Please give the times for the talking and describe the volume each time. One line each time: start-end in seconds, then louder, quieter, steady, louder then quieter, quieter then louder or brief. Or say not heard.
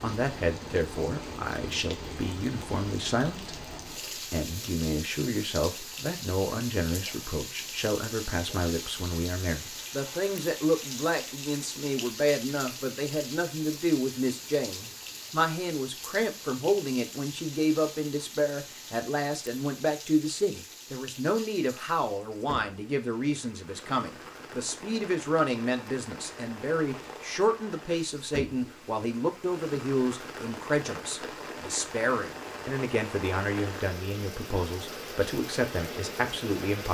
0.0-36.8 steady.